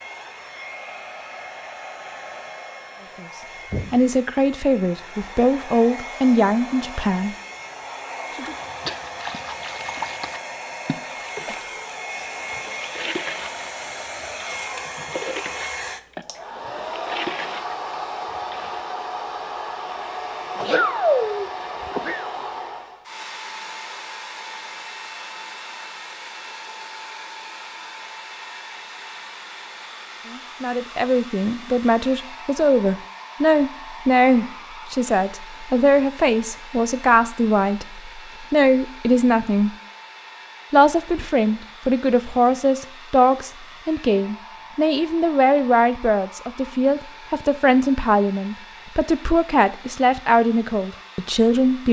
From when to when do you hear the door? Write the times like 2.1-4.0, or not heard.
not heard.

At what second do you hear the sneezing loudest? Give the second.
21 s.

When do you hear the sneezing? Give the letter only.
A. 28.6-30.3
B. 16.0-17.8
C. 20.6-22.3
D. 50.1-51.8
C.